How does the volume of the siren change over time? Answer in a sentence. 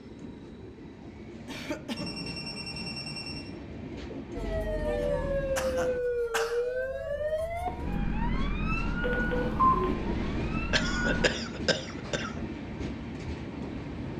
The loudness of the siren goes down.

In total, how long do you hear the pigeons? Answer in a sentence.
The pigeons can't be heard in this clip.